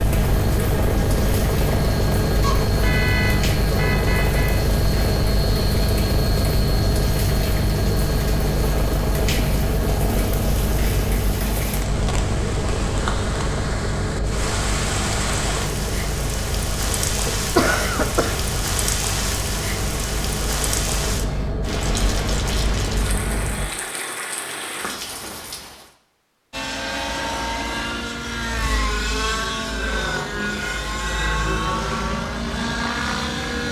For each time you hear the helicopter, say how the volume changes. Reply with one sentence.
The helicopter can be heard from 0.0 to 23.7 s, getting quieter; and from 26.5 to 33.6 s, at a steady volume.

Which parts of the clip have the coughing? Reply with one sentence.
You can hear the coughing from 17.2 to 18.4 s.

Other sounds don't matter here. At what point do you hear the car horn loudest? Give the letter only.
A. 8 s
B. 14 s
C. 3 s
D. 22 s
C.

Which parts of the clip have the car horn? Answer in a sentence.
The car horn can be heard from 2.4 to 4.6 s.